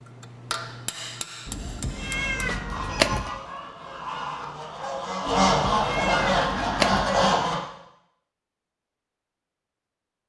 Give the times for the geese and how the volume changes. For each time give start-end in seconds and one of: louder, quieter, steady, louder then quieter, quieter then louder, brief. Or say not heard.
1.9-7.5 louder.